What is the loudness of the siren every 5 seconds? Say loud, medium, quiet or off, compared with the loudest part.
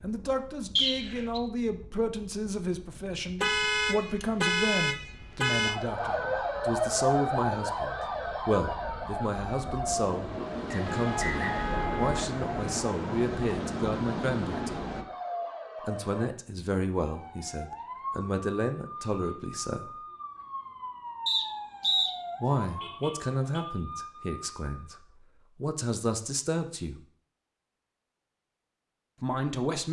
off, loud, medium, medium, medium, off.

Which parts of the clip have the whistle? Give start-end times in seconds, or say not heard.
0.8-1.4, 10.7-11.5, 21.2-22.1.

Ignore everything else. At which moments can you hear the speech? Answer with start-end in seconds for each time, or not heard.
0.0-14.8, 15.8-20.0, 22.4-27.0, 29.2-29.8.